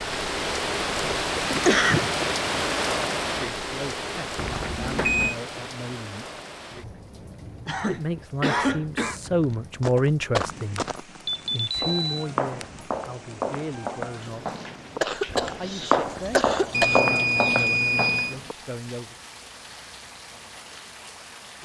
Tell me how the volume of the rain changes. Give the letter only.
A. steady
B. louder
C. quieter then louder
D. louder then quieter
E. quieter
E.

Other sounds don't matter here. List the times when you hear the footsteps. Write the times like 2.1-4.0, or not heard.
9.2-18.6.